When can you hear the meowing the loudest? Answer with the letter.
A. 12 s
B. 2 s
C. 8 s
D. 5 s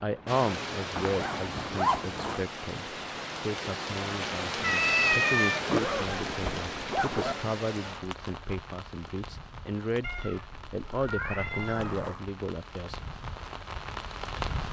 D.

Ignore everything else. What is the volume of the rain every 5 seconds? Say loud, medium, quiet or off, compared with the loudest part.
loud, loud, medium.